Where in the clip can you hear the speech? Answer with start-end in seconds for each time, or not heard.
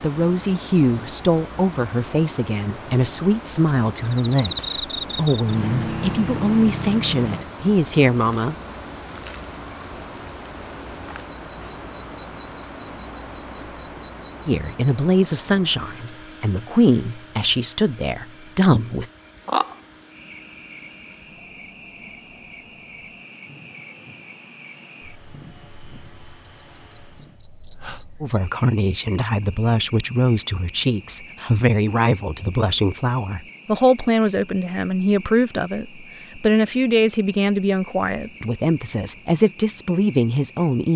0.0-8.6, 14.4-19.1, 28.2-40.9.